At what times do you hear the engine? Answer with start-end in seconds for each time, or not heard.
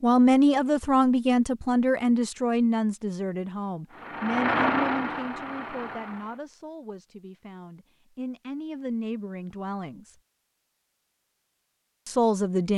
3.9-6.4.